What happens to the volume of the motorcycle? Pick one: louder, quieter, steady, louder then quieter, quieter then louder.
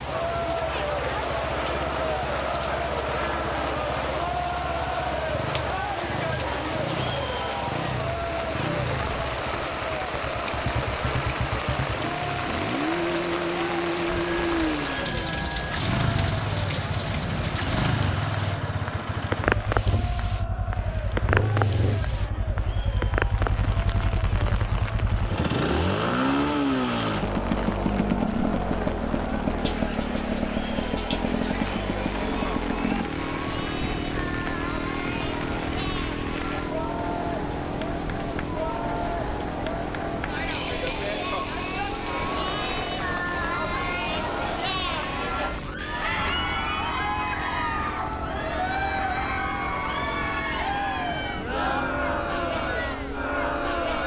louder then quieter.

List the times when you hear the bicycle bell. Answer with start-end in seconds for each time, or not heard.
14.2-15.8.